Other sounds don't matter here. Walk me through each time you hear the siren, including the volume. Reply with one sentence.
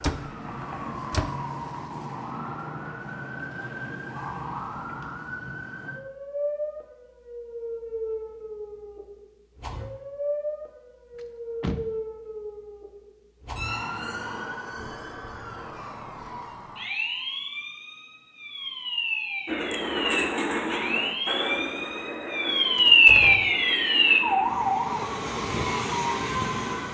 The siren can be heard from 0.0 to 26.8 s, getting louder.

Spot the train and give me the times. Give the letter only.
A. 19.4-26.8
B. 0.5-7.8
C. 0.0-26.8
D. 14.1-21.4
A.